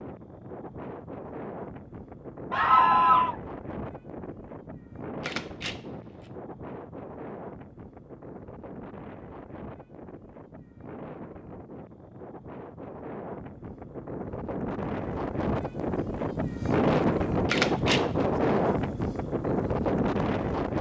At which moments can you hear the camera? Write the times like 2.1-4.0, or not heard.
5.2-6.3, 17.4-18.1.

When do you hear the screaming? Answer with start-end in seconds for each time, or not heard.
2.5-3.4.